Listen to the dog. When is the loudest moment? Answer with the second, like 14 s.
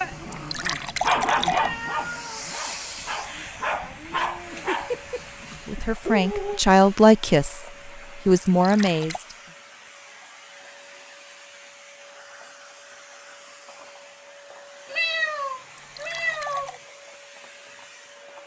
1 s.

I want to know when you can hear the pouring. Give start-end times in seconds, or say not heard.
0.3-1.7, 8.4-9.2, 15.8-16.8.